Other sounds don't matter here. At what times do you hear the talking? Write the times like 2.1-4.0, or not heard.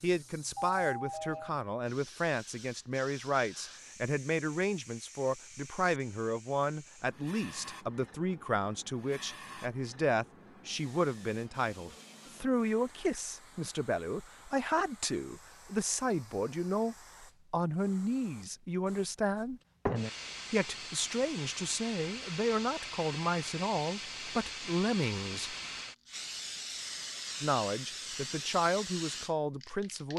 0.0-19.6, 20.5-25.6, 27.4-30.1.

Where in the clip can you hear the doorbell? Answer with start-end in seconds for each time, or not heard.
0.6-1.6.